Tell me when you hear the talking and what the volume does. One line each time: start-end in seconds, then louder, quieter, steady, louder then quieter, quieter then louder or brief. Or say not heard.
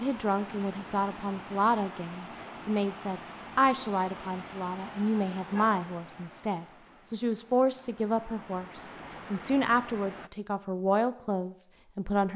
0.0-12.3 steady.